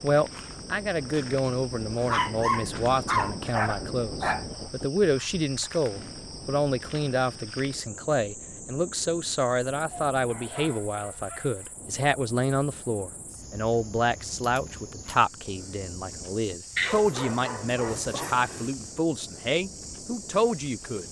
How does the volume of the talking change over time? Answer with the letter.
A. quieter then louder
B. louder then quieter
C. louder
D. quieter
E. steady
E.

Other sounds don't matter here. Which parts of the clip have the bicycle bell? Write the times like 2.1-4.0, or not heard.
not heard.